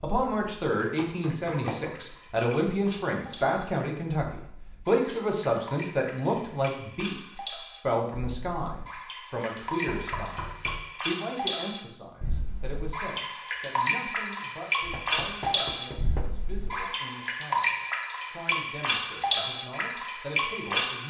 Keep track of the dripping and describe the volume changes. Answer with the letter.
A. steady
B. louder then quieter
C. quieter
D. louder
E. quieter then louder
D.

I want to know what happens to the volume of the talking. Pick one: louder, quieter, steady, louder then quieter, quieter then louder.
quieter.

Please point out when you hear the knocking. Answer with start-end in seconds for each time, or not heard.
0.9-1.9, 9.8-10.9, 14.8-16.3.